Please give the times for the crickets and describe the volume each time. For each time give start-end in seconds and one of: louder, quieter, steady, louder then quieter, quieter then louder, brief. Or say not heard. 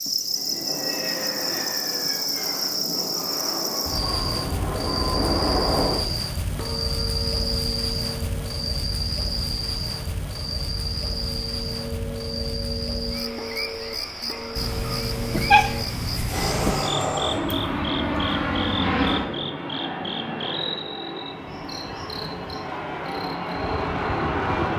0.0-24.7 quieter.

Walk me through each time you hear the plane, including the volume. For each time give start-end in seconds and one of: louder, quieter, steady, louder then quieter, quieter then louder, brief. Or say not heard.
0.0-6.2 louder
16.2-24.7 quieter then louder.